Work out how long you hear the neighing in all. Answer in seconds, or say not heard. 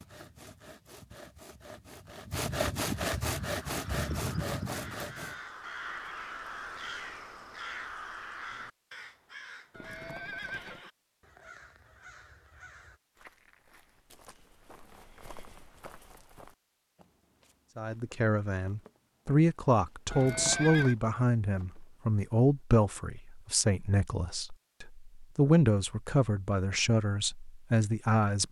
2 s.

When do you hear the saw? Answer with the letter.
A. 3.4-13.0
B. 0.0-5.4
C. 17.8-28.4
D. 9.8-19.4
B.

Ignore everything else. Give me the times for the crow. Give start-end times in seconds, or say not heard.
3.4-13.0.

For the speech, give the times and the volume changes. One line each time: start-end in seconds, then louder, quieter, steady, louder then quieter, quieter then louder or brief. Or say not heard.
17.8-28.4 steady.